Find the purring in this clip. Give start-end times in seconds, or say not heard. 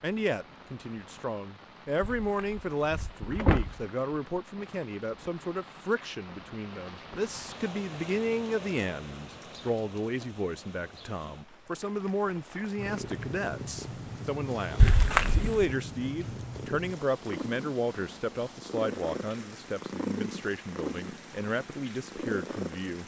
12.8-23.0.